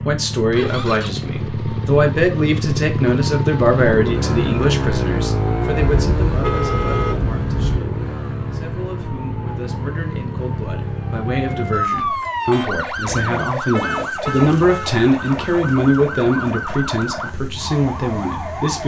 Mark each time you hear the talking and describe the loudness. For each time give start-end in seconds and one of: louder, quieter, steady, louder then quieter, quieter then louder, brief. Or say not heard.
0.0-18.8 quieter then louder.